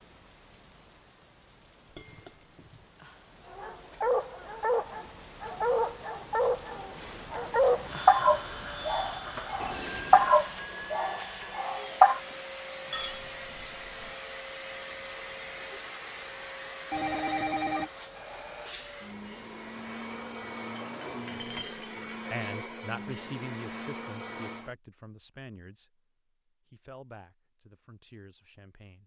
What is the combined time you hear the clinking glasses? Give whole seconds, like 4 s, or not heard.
3 s.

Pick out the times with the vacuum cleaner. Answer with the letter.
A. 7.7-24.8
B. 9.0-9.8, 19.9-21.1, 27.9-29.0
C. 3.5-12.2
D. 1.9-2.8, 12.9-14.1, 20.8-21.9
A.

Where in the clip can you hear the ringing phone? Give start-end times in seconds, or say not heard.
9.6-10.3, 16.9-17.9.